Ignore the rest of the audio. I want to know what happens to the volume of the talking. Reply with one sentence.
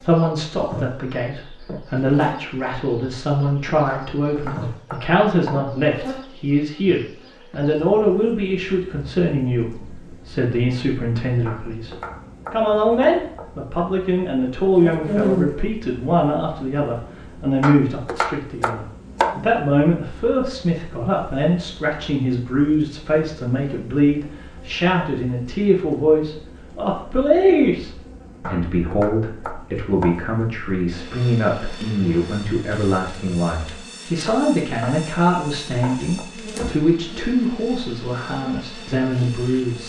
The volume of the talking stays about the same.